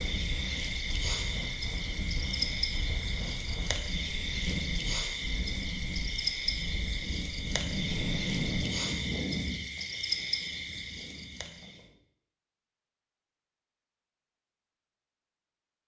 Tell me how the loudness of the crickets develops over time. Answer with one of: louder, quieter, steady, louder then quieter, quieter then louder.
steady.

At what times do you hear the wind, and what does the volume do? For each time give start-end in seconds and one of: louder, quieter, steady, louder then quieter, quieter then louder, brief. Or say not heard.
0.0-11.9 louder then quieter.